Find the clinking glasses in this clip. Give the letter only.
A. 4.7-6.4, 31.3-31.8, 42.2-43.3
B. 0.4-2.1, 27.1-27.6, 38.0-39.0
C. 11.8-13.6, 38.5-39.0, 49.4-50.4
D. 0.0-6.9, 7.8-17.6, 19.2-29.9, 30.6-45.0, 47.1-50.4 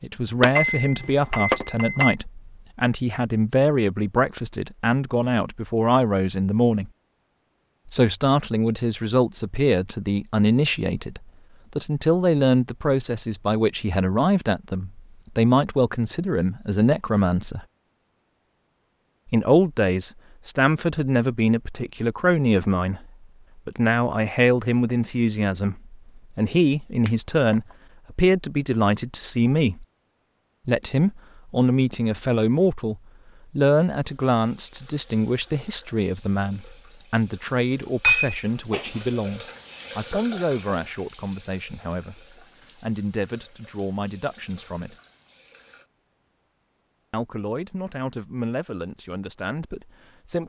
B.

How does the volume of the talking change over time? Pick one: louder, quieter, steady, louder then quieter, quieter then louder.
quieter.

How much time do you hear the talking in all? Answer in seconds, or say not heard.
45 s.